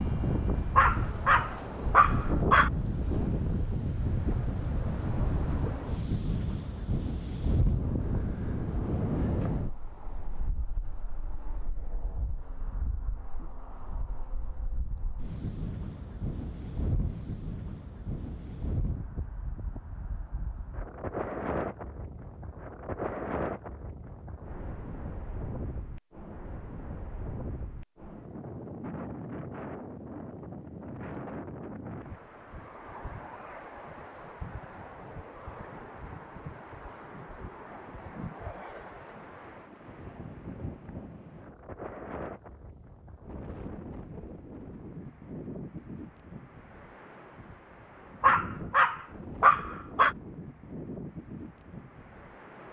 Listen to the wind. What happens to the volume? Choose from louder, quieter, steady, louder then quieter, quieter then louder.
quieter.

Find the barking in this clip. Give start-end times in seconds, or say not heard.
0.8-2.7, 48.2-50.1.